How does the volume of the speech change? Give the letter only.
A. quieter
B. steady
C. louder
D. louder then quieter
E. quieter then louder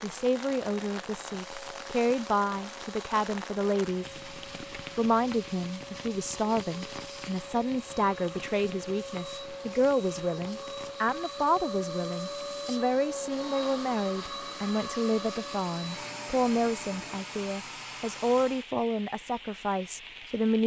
B.